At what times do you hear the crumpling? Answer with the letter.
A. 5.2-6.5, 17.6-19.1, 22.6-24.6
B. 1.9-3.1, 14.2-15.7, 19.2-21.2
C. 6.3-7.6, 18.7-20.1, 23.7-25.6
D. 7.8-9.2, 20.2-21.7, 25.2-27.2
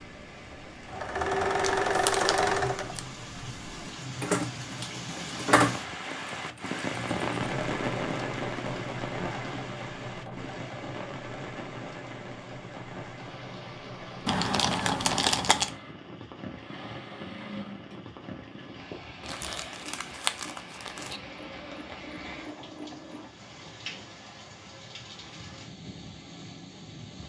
B.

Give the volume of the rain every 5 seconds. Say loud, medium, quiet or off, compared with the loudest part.
medium, loud, medium, medium, medium, medium.